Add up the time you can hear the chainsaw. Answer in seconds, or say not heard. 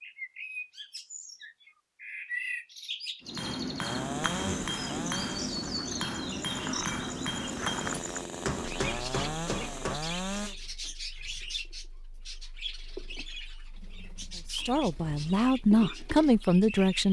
7 s.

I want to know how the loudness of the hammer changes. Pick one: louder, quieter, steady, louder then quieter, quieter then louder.
steady.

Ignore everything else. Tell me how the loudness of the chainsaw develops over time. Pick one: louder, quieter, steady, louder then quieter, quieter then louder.
quieter then louder.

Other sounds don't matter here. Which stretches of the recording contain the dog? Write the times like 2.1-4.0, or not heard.
not heard.